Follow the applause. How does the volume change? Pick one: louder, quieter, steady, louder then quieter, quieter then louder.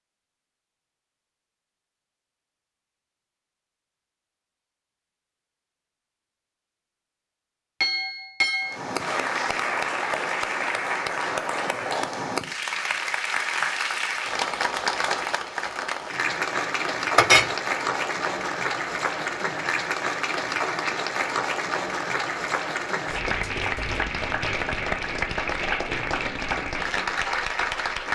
steady.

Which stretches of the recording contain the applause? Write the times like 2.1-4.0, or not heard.
8.6-28.0.